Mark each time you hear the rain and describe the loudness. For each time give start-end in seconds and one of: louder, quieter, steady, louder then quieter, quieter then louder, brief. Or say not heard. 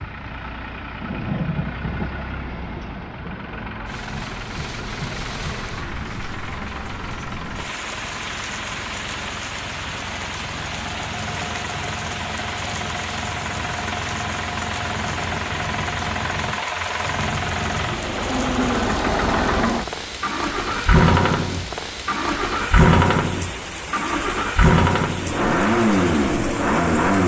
0.0-27.2 steady.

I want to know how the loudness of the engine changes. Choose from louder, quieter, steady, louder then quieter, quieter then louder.
louder.